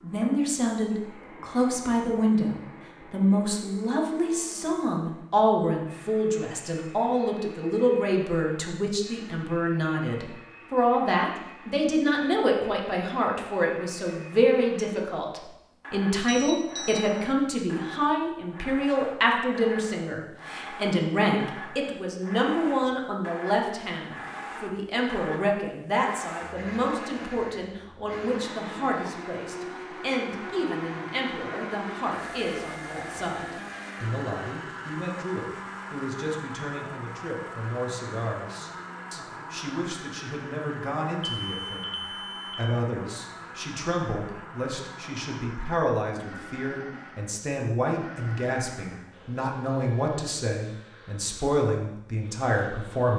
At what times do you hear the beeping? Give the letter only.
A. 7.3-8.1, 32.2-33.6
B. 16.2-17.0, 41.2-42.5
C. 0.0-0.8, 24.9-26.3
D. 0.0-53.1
B.